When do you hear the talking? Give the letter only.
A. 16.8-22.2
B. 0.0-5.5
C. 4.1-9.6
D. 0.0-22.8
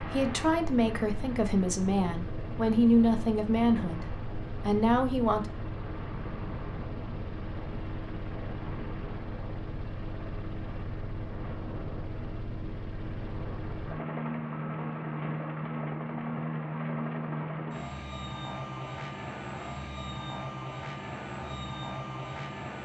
B.